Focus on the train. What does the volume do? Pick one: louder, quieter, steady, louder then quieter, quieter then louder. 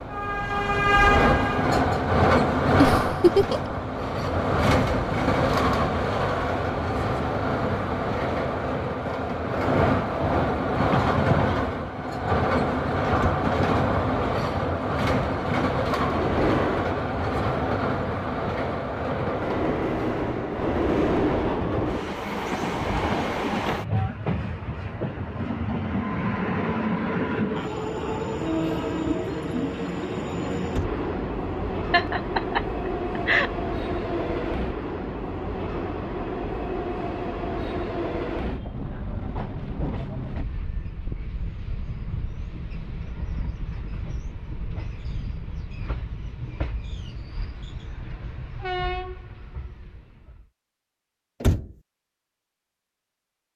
quieter.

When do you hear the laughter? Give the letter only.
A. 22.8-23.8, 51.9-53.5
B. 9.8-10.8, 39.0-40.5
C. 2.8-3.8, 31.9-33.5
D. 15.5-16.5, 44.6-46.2
C.